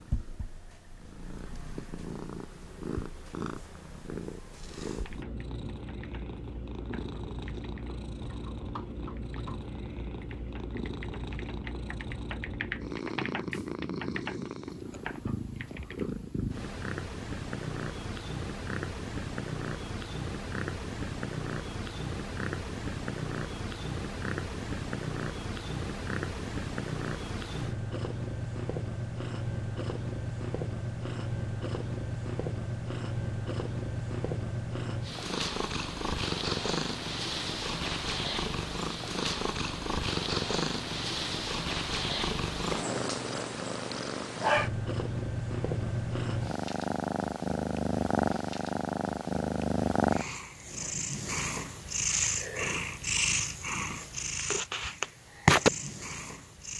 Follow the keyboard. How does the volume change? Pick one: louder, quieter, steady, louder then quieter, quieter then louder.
louder.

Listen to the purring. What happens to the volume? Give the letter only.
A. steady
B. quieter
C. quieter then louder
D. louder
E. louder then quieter
D.